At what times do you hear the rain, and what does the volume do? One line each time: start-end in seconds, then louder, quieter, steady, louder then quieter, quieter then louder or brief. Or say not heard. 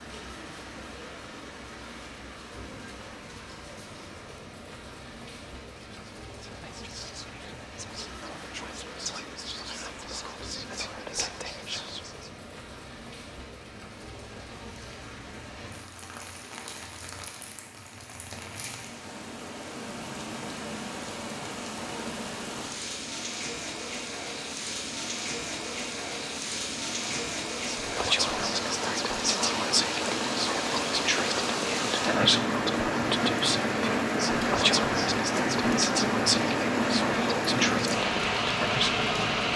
0.0-39.5 louder.